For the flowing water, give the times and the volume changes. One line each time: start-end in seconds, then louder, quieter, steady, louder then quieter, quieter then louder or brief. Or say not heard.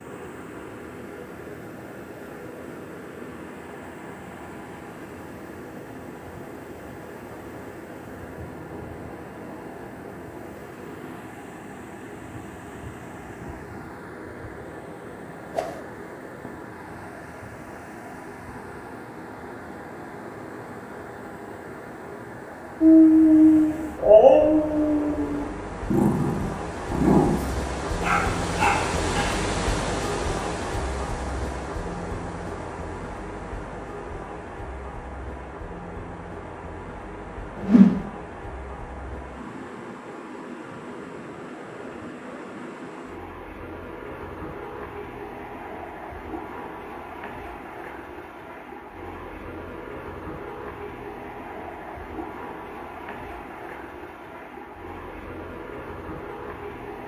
0.0-57.0 louder then quieter.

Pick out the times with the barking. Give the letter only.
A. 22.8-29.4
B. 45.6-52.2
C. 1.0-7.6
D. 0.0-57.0
A.